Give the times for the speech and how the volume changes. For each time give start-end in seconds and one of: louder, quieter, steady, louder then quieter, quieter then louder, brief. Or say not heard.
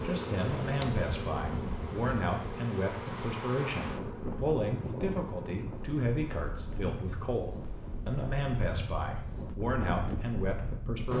0.0-11.1 steady.